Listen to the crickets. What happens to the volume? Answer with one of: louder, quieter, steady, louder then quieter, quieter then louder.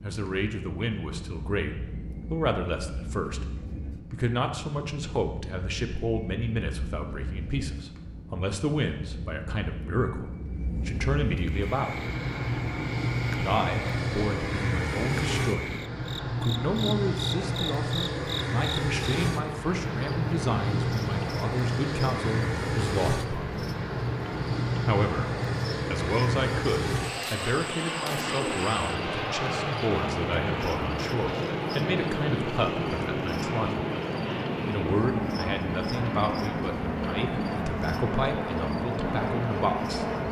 steady.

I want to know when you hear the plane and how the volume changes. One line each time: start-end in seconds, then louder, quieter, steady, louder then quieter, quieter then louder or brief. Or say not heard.
0.0-40.2 louder.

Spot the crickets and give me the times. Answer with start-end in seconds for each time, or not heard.
11.3-40.2.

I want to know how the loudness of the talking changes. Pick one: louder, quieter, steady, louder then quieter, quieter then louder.
steady.